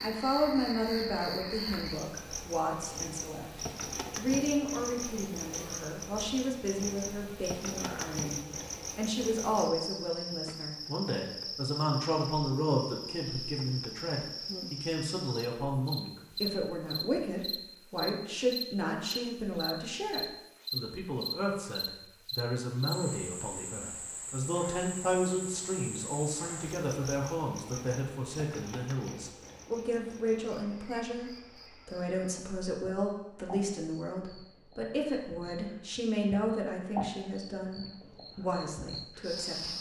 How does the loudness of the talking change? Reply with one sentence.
The volume of the talking stays about the same.